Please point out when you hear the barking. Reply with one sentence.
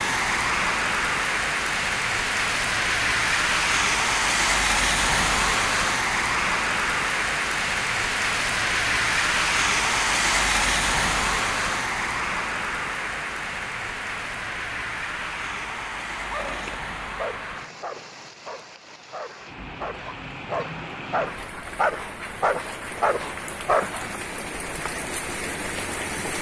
You can hear the barking from 16.2 to 24.2 s.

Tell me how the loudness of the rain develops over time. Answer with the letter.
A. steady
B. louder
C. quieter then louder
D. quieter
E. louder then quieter
D.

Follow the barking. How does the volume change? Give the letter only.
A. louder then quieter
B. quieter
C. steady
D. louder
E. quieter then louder
E.